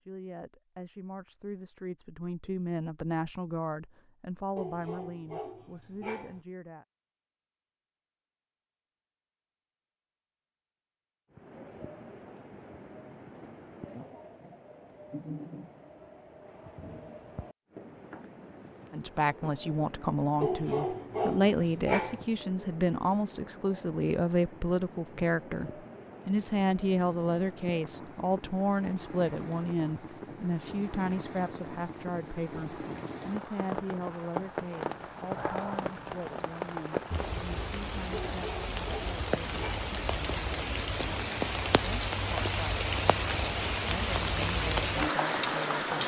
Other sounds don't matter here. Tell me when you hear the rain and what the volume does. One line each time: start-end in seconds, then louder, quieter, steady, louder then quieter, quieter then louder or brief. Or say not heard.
11.3-46.0 louder.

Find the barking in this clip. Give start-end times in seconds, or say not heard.
4.5-6.4, 20.4-22.2, 38.1-39.9.